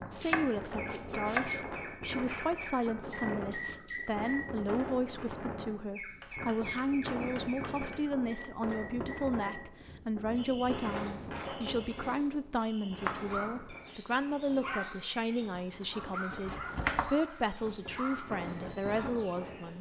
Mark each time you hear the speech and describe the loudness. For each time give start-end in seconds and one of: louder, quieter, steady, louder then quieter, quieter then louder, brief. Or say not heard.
0.1-19.7 steady.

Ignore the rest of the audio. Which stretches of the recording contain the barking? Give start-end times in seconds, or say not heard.
13.3-13.8, 14.6-19.4.